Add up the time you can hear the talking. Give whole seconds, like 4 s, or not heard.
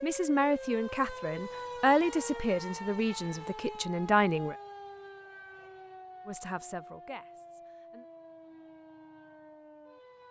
6 s.